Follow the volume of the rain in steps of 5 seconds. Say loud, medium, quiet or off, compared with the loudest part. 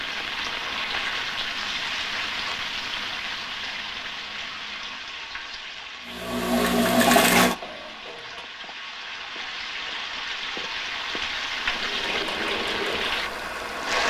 loud, medium, loud.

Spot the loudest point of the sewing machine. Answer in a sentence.
The loudest moment of the sewing machine is at 7 seconds.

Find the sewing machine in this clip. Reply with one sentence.
You can hear the sewing machine from 6.0 to 8.4 s and from 11.6 to 14.0 s.